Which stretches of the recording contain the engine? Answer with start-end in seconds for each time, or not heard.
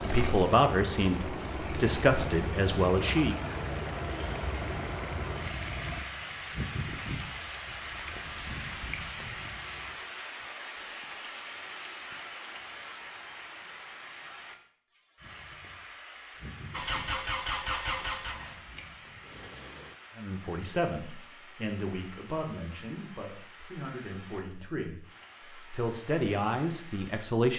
0.0-9.9, 16.7-19.9.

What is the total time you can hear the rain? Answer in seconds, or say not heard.
27 s.